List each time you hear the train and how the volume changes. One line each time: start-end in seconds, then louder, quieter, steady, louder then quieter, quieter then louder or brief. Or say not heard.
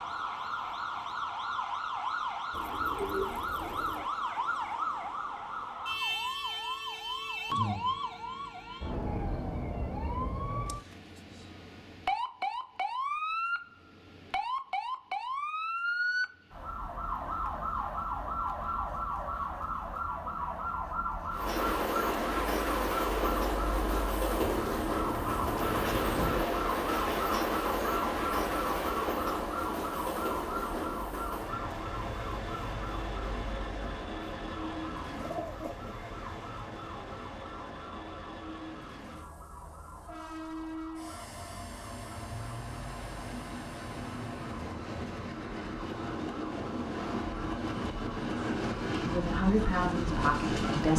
21.3-50.9 quieter then louder.